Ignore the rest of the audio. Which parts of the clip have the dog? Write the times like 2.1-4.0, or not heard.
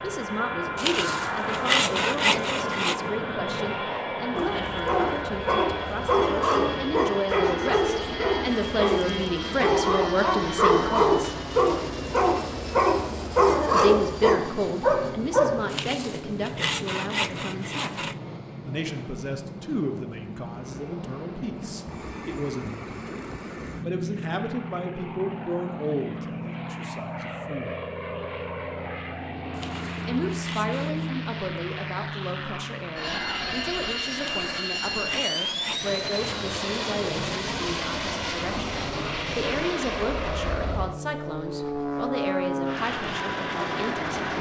4.3-15.6.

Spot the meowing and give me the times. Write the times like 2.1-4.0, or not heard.
not heard.